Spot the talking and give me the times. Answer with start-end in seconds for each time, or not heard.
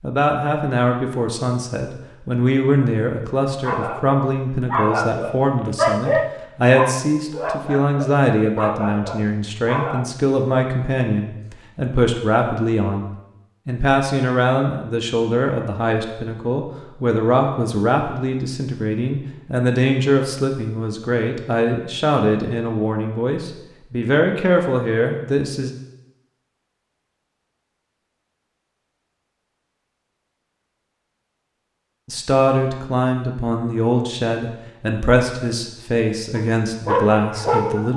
0.0-25.7, 32.0-37.9.